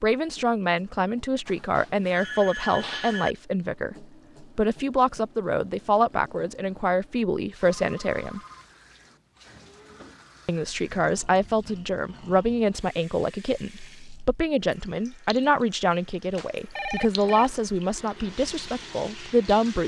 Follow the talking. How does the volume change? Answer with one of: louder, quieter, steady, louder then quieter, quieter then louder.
steady.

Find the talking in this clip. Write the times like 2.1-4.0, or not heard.
0.0-8.4, 10.4-19.8.